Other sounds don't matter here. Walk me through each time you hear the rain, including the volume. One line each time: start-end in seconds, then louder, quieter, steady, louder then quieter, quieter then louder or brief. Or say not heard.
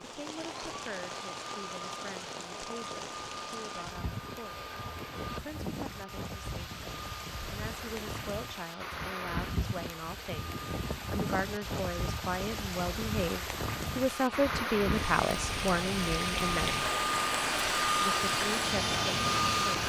0.0-19.8 louder.